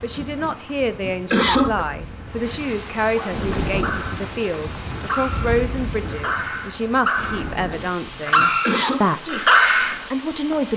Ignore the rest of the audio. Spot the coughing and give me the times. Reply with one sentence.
You can hear the coughing from 0.1 to 1.9 s and from 7.5 to 9.1 s.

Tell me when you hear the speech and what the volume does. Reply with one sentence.
You can hear the speech from 0.0 to 10.7 s, at a steady volume.